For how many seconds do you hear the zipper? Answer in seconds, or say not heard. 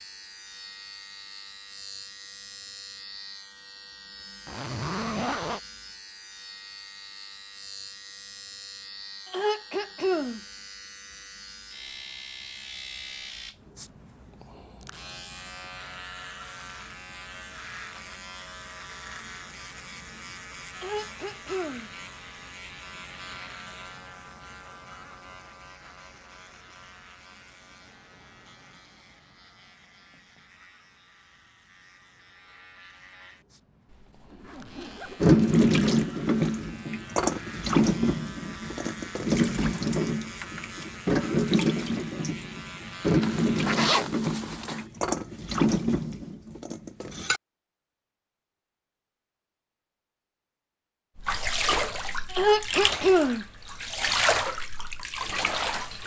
4 s.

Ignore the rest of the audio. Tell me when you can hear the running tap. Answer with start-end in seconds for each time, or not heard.
35.2-47.4, 51.1-56.0.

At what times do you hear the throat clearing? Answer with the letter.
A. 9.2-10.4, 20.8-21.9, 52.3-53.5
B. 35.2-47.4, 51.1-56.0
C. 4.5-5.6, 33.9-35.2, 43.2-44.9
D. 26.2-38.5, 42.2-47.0
A.